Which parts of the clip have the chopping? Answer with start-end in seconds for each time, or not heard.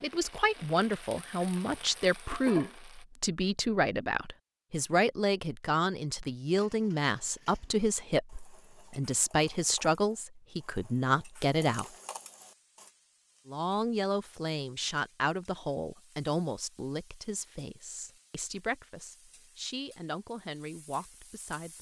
not heard.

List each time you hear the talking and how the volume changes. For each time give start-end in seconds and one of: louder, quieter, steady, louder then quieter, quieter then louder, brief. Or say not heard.
0.0-11.8 steady
13.4-21.7 quieter.